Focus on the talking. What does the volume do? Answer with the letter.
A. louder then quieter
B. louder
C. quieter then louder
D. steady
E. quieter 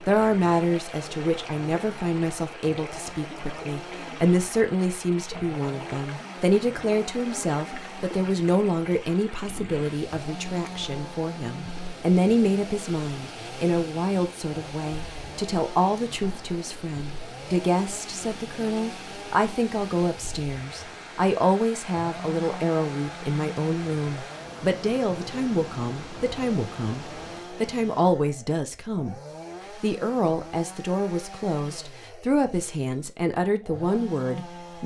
D.